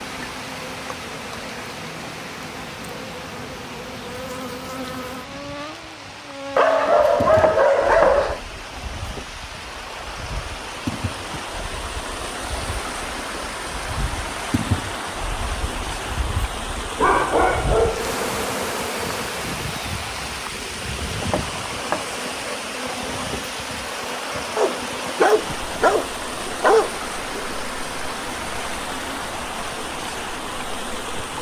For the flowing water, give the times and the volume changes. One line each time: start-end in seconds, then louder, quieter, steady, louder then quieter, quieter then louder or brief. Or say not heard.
0.0-31.3 louder.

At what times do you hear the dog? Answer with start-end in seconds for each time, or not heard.
6.5-8.4, 16.9-18.1, 24.6-27.5.